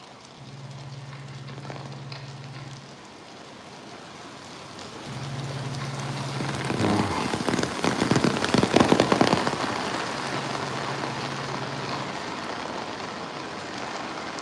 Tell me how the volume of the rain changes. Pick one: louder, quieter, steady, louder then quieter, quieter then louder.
louder then quieter.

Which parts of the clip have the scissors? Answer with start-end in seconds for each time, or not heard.
0.3-2.8, 5.0-6.7, 10.2-12.2.